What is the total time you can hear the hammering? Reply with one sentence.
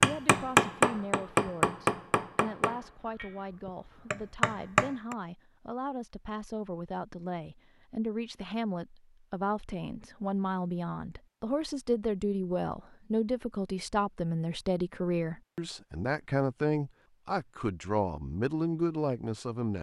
The hammering can be heard for 5 seconds in total.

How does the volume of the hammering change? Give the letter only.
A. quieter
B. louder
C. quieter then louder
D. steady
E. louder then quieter
C.